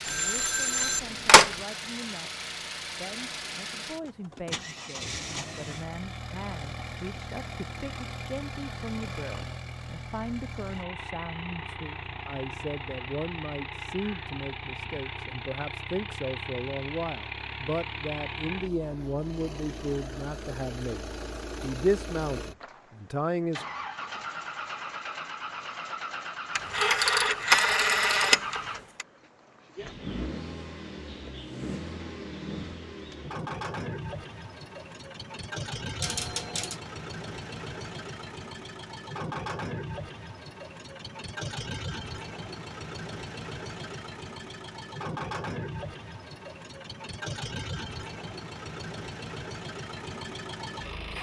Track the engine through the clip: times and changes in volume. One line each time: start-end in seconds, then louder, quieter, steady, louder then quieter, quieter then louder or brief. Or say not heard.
0.0-51.1 steady.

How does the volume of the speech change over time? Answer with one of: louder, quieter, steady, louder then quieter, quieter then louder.
louder.